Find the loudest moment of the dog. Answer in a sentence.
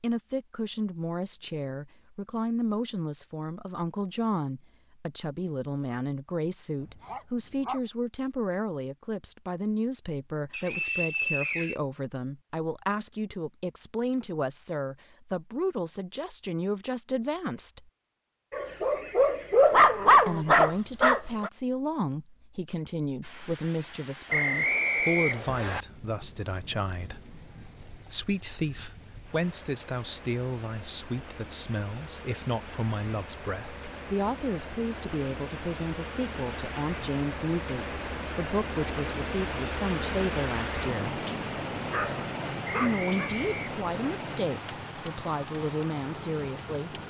The loudest moment of the dog is at 20 seconds.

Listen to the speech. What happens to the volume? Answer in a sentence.
The loudness of the speech stays about the same.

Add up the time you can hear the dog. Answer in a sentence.
The dog can be heard for 6 seconds in total.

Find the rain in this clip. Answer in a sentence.
The rain can be heard from 23.2 to 47.0 s.